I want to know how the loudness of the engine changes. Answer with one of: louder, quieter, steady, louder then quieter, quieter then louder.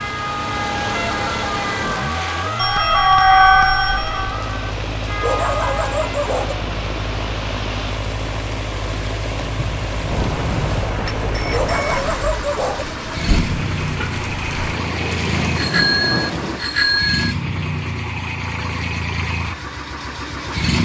steady.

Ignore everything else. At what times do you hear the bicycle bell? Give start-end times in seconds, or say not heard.
2.5-4.3, 10.1-12.1, 15.6-17.4.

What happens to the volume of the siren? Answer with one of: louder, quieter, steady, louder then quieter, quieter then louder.
louder then quieter.